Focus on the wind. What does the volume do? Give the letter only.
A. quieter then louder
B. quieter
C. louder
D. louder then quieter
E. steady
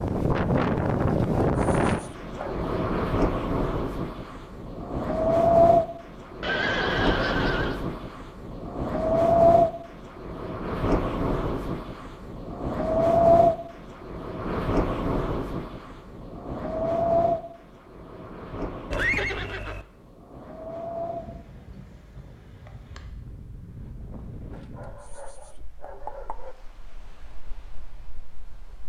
B.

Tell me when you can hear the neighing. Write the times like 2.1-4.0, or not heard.
6.4-7.8, 18.9-19.9.